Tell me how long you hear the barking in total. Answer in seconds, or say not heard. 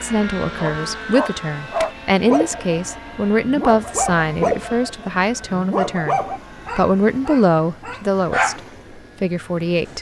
8 s.